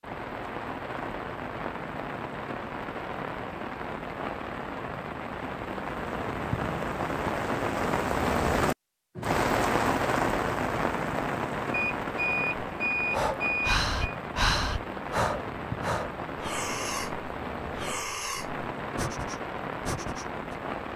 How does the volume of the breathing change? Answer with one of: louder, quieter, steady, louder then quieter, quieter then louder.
quieter.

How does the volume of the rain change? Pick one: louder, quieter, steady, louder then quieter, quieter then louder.
louder then quieter.